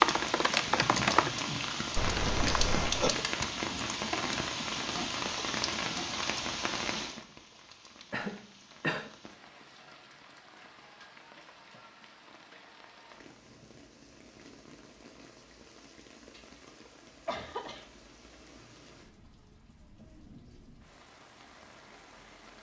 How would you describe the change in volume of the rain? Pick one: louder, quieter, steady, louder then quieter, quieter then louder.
quieter.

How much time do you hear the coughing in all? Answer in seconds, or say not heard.
4 s.